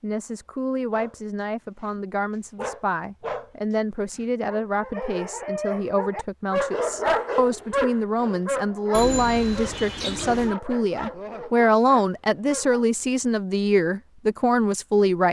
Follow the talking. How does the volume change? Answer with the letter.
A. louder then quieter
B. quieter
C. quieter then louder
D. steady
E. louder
E.